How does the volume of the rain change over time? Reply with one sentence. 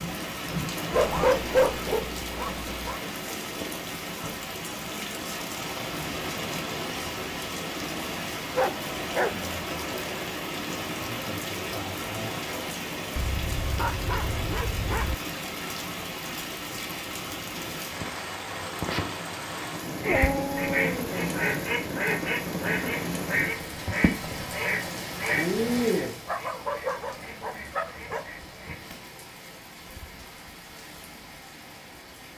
The volume of the rain stays about the same.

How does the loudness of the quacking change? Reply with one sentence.
The volume of the quacking goes down.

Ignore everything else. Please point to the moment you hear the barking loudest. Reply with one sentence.
The volume of the barking peaks at 1 second.